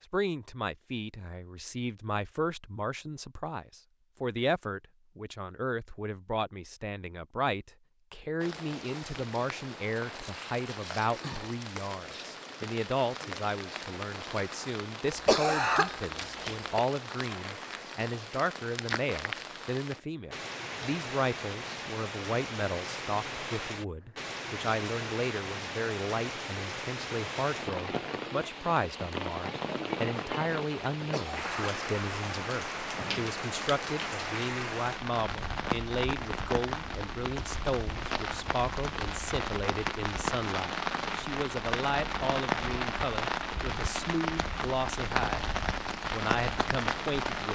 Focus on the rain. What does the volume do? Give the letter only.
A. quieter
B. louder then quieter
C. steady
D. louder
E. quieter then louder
D.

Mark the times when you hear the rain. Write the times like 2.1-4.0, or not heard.
8.4-47.5.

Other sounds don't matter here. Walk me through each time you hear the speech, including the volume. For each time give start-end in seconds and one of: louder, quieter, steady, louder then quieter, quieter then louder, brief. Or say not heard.
0.1-45.5 steady
46.1-47.5 brief.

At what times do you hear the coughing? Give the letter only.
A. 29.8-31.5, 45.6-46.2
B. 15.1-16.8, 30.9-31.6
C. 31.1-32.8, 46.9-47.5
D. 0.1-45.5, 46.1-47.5
B.